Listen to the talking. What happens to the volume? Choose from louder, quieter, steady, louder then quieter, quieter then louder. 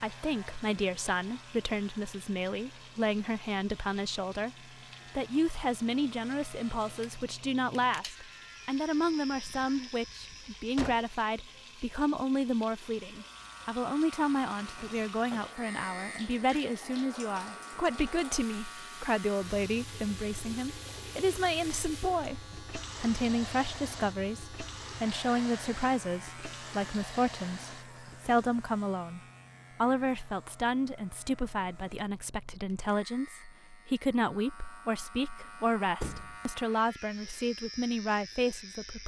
steady.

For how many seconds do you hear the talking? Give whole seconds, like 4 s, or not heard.
38 s.